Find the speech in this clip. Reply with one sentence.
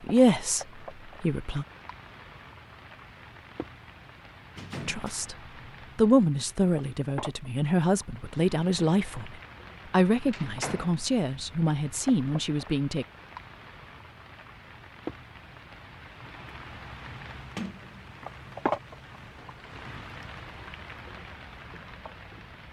You can hear the speech from 0.0 to 1.6 s, from 4.8 to 5.3 s and from 6.0 to 13.1 s.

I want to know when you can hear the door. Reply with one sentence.
You can hear the door from 4.5 to 5.2 s, from 10.3 to 11.0 s and from 17.6 to 18.6 s.